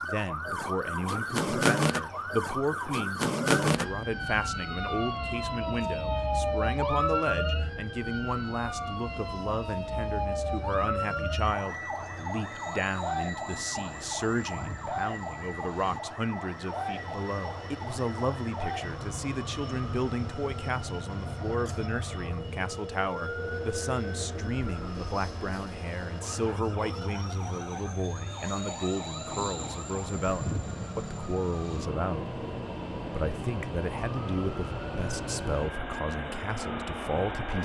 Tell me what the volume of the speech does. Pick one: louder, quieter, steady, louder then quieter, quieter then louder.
steady.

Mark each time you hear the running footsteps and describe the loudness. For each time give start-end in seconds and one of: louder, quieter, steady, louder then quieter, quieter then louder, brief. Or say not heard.
not heard.